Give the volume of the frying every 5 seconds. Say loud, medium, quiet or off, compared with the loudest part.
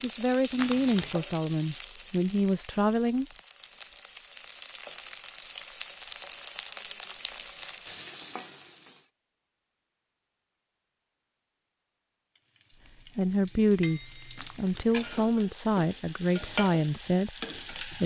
loud, loud, quiet, medium.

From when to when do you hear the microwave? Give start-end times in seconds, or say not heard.
not heard.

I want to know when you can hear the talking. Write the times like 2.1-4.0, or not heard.
0.0-3.2, 13.2-18.0.